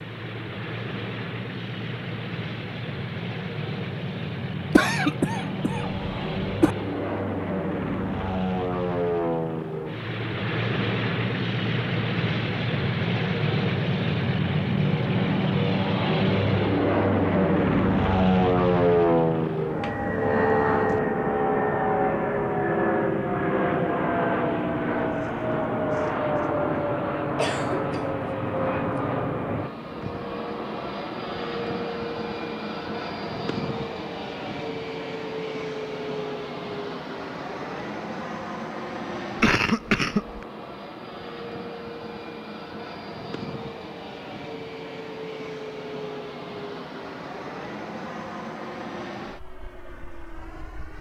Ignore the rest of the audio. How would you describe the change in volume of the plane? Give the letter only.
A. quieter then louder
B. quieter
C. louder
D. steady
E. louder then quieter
E.